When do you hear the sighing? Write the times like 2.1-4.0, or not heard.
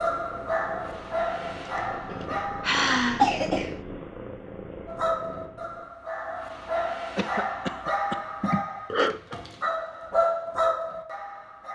1.6-3.3, 8.4-9.3.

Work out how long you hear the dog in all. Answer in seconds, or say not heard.
10 s.